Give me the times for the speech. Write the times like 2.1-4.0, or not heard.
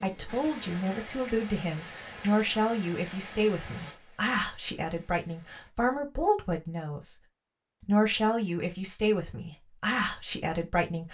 0.0-7.2, 7.8-11.0.